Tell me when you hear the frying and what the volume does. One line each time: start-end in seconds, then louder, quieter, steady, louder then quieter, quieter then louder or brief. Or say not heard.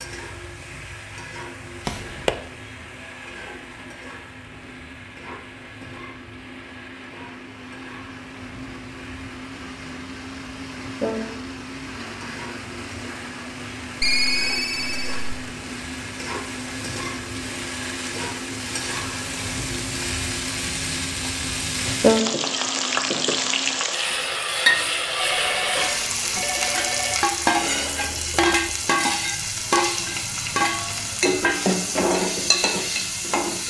0.0-33.6 louder.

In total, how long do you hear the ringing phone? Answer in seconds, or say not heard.
4 s.